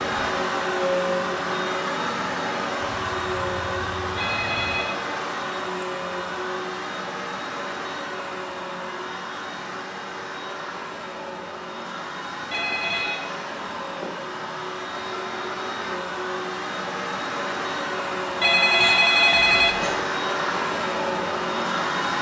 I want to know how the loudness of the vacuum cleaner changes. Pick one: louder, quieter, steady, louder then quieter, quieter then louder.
quieter then louder.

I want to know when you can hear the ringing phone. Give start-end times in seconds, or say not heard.
4.2-5.0, 12.5-13.2, 18.4-20.0.